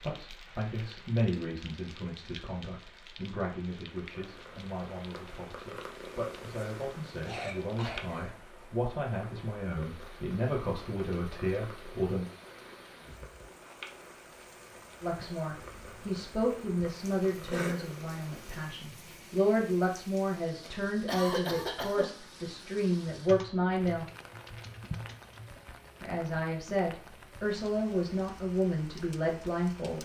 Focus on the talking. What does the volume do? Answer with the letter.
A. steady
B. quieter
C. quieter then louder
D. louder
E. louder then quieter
D.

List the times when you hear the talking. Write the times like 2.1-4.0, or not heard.
0.0-12.2, 15.0-24.1, 26.0-30.0.